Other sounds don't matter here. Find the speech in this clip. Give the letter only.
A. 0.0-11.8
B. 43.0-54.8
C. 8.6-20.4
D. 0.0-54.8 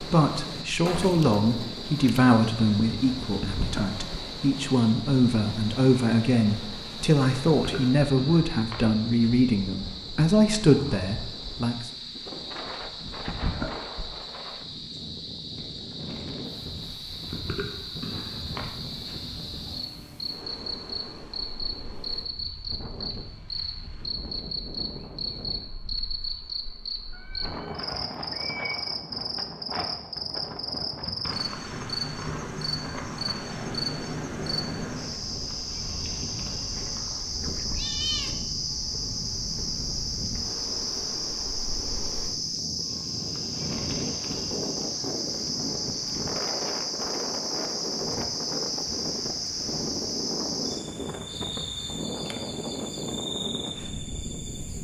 A.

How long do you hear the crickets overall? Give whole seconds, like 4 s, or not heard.
55 s.